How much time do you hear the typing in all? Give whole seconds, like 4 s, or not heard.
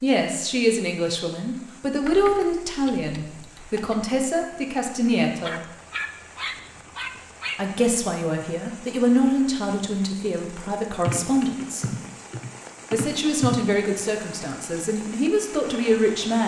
5 s.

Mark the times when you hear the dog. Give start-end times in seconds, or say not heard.
5.4-7.6.